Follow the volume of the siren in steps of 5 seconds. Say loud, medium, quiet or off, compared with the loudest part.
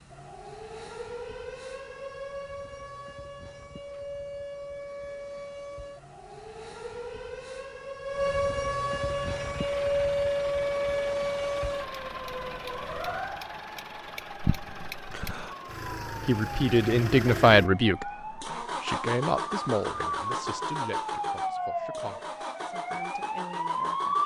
medium, loud, loud, medium, loud.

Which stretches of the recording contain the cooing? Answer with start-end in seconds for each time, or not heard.
not heard.